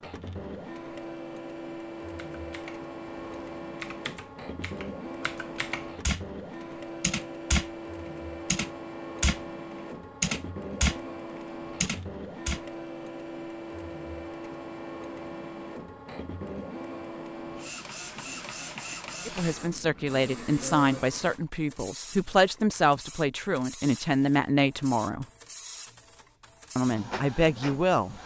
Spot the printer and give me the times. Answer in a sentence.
You can hear the printer from 0.0 to 28.2 s.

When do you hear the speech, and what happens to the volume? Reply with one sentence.
The speech can be heard from 19.2 to 25.2 s, at a steady volume; and briefly from 26.8 to 28.1 s.